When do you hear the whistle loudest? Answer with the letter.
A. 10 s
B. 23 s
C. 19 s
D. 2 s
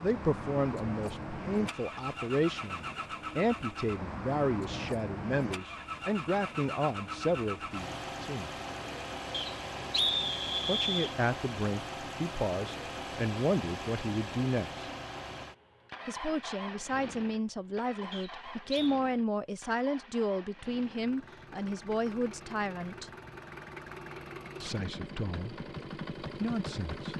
A.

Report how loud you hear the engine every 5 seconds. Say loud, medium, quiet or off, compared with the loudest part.
loud, loud, loud, medium, medium, loud.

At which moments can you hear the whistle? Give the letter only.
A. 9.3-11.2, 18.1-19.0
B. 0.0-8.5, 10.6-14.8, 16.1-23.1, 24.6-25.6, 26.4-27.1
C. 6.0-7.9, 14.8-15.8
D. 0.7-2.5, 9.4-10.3
A.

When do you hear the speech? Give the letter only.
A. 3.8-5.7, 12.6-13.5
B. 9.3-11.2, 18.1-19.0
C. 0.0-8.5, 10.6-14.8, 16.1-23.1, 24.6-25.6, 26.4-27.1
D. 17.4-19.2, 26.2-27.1
C.